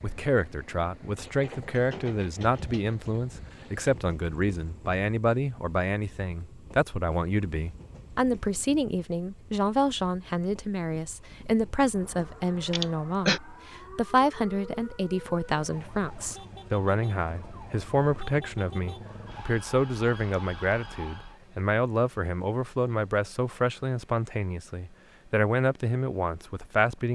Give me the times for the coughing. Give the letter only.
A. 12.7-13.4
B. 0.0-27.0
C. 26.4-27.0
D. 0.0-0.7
A.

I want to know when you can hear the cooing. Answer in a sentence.
You can't hear the cooing here.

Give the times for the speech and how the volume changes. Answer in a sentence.
You can hear the speech from 0.0 to 27.0 s, at a steady volume.